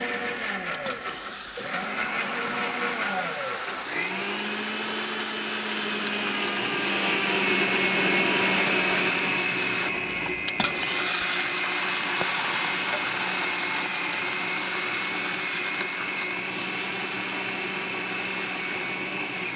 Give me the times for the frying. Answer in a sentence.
You can hear the frying from 0.2 to 19.5 s.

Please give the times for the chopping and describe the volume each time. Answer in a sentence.
The chopping can't be heard in this clip.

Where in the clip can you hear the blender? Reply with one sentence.
The blender can be heard from 0.0 to 19.5 s.